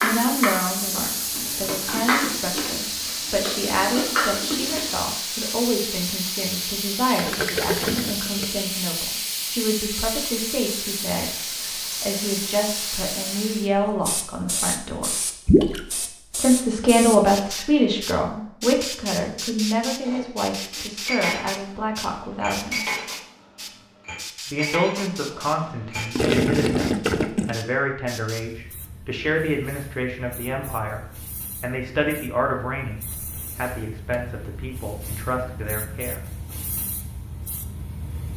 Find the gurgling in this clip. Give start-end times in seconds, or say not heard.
7.2-8.4, 15.4-15.8, 26.1-27.6.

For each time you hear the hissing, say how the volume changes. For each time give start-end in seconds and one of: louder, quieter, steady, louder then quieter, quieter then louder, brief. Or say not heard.
0.0-38.3 quieter.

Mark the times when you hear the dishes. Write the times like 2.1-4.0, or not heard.
0.0-4.9, 20.0-26.1.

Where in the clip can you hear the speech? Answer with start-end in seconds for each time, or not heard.
0.0-11.3, 12.0-15.1, 16.4-22.8, 24.4-36.2.